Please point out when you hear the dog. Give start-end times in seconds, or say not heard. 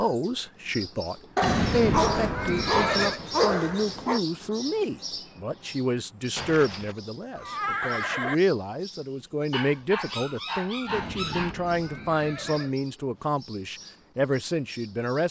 1.4-4.2, 9.5-11.6.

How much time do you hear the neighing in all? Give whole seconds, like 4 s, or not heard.
6 s.